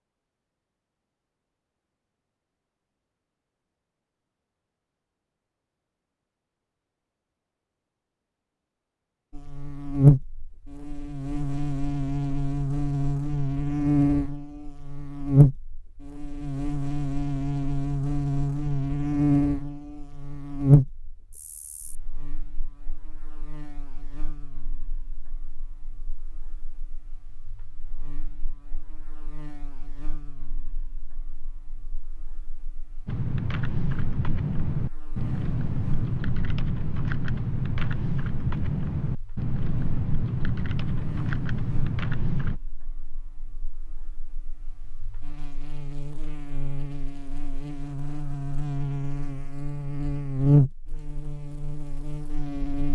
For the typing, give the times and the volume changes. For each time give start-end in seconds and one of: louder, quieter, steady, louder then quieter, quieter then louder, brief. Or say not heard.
33.0-42.6 steady.